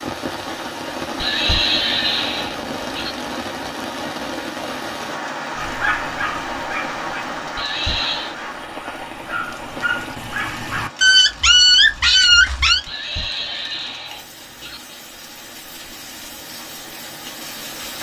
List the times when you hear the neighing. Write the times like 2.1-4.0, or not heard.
1.2-3.1, 7.5-8.3, 12.8-14.8.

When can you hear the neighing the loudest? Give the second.
2 s.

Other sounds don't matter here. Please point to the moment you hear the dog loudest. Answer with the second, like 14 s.
12 s.